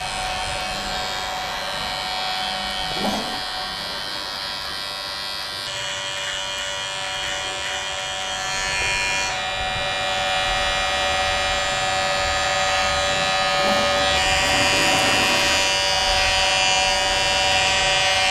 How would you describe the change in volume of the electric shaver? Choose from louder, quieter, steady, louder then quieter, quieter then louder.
louder.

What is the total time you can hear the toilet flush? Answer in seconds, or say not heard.
3 s.